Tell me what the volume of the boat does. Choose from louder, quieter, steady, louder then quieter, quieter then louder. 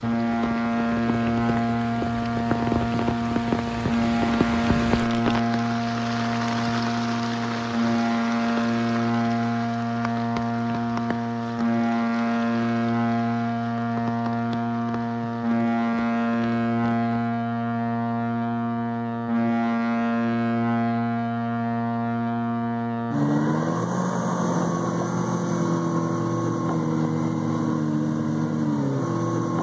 steady.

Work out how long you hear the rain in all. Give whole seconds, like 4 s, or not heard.
17 s.